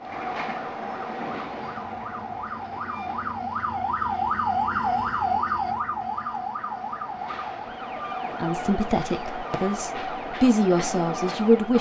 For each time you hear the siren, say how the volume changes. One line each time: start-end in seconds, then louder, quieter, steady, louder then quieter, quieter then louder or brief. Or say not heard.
0.0-11.7 louder then quieter.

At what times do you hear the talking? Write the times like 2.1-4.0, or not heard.
8.3-11.7.